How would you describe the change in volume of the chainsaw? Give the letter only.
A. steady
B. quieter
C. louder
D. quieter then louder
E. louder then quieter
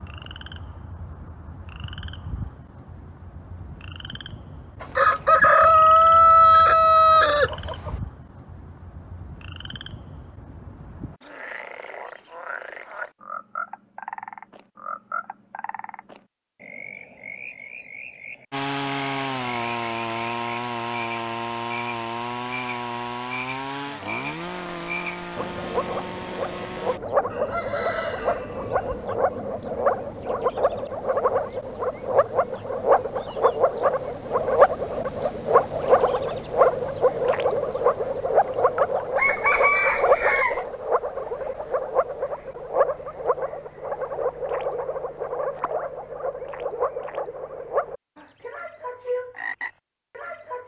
B.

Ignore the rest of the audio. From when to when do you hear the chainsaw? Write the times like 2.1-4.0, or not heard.
18.5-27.0.